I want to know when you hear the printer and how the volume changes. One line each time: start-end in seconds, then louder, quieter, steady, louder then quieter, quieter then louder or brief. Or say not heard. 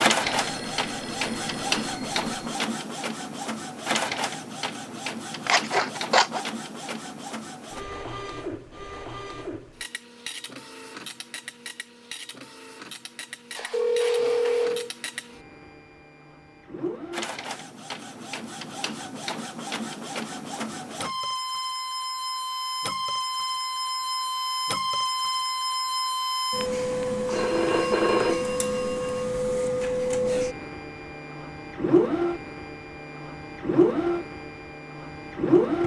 0.0-35.8 quieter then louder.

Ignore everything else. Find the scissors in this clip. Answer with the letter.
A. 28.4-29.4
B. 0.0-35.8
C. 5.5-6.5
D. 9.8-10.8
C.